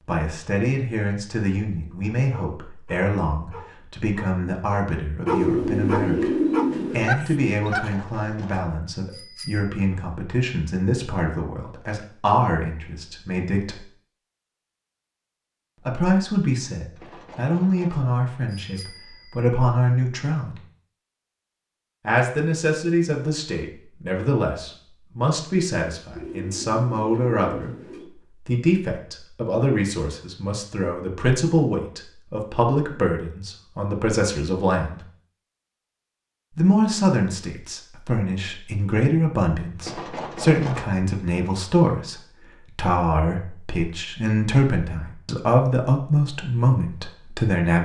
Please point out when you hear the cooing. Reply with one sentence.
The cooing can be heard from 5.2 to 7.1 s and from 26.1 to 28.1 s.